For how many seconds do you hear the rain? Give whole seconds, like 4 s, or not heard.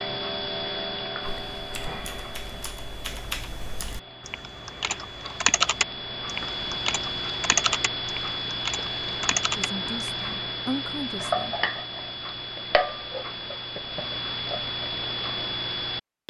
not heard.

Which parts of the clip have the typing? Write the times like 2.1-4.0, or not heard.
1.2-10.2.